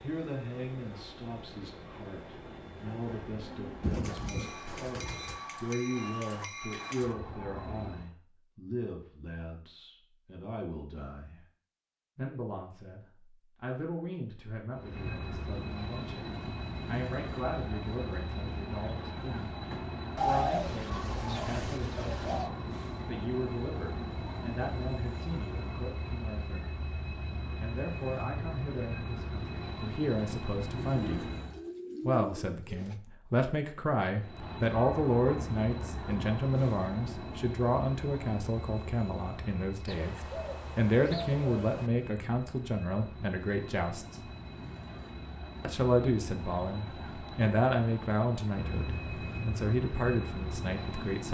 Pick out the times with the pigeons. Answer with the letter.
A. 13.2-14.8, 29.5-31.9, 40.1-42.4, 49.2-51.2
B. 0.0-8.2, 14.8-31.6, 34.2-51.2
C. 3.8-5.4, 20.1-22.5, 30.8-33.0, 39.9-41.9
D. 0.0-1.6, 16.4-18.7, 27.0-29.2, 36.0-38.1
C.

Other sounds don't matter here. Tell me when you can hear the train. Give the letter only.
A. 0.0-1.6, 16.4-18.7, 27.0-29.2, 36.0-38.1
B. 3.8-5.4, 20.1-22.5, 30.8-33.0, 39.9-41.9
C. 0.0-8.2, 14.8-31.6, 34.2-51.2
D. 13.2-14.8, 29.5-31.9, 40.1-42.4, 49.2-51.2
C.